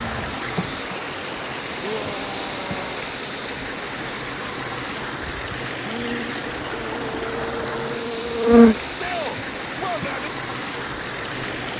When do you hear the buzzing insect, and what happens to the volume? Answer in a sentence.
The buzzing insect can be heard from 0.0 to 11.7 s, getting louder then quieter.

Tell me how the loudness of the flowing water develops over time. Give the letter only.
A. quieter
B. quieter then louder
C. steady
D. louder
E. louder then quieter
C.